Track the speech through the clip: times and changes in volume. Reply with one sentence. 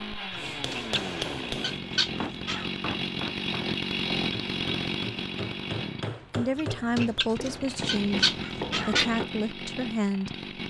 The speech can be heard from 6.3 to 10.6 s, at a steady volume.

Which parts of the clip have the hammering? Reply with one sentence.
The hammering can be heard from 0.3 to 9.3 s.